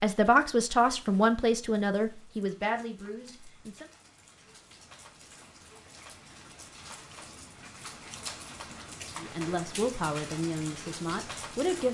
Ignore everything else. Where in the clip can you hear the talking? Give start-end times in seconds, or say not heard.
0.0-3.9, 9.2-11.8.